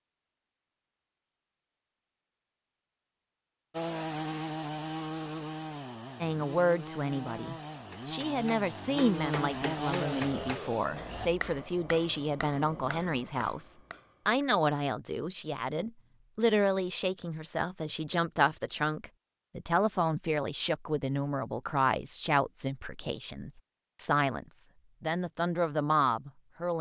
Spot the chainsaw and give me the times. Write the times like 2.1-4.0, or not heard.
3.7-11.3.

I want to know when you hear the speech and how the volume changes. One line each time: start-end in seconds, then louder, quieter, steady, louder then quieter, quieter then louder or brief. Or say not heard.
6.2-26.7 steady.